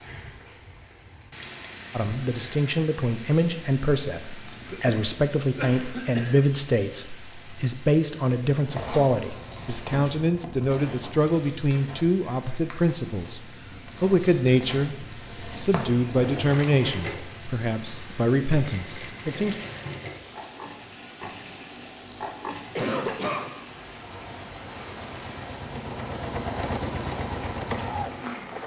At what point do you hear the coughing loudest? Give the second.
23 s.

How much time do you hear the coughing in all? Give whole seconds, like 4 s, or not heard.
3 s.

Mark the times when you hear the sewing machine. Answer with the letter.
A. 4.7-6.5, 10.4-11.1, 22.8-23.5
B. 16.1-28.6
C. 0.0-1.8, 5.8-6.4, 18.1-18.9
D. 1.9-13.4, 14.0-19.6
B.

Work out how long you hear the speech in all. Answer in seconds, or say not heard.
17 s.